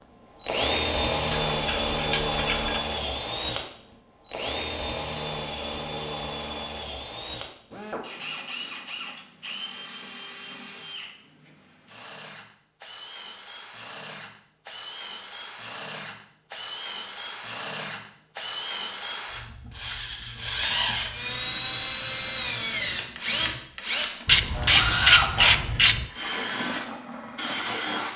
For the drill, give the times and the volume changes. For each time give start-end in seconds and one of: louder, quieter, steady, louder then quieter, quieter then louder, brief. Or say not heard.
0.4-28.1 quieter then louder.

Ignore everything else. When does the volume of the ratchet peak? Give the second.
25 s.